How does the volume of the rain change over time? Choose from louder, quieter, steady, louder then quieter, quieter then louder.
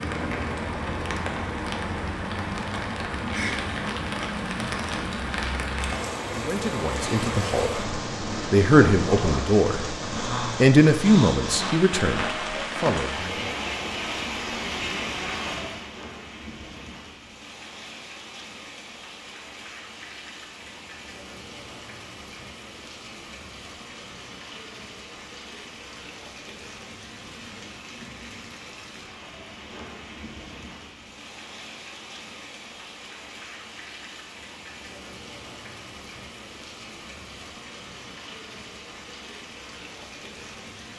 quieter.